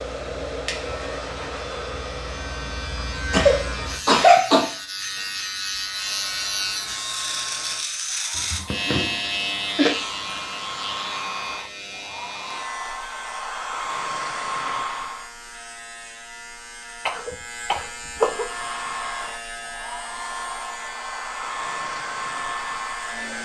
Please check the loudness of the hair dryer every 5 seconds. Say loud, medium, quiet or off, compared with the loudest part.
loud, medium, loud, loud, loud.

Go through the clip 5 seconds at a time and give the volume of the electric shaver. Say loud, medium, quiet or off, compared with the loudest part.
medium, loud, medium, medium, medium.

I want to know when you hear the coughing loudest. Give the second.
4 s.